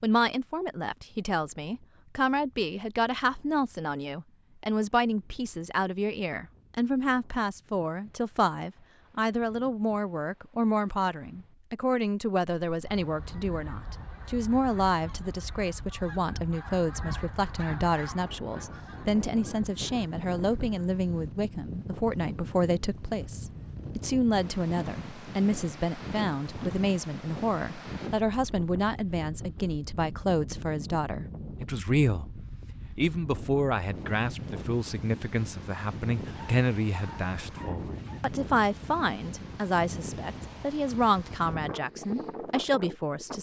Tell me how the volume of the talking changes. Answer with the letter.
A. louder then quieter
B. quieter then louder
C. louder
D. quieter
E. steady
E.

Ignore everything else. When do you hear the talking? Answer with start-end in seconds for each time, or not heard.
0.0-32.3, 33.0-43.3.